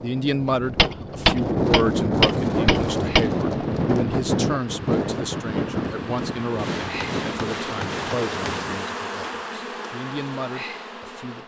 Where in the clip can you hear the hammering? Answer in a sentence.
The hammering can be heard from 0.6 to 3.2 s and from 6.5 to 8.6 s.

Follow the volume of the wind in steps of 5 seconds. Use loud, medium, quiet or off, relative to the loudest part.
loud, medium, off.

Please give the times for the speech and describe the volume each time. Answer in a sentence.
You can hear the speech from 0.0 to 11.4 s, getting quieter.